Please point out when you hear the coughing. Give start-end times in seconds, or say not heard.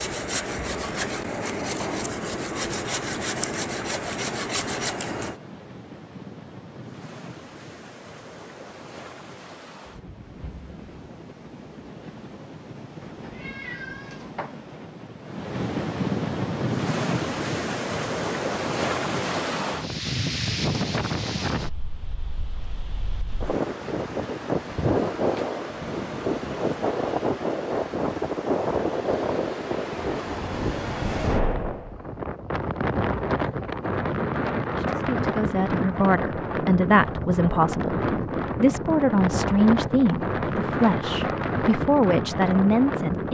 not heard.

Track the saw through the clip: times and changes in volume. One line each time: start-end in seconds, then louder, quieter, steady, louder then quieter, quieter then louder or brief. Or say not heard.
0.0-5.4 steady.